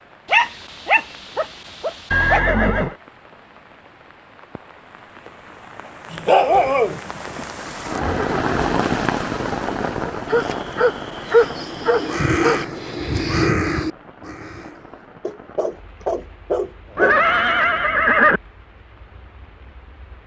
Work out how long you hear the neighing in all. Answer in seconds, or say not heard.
3 s.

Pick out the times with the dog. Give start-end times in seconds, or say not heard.
0.2-2.4, 6.1-7.4, 10.2-12.7, 15.2-17.2.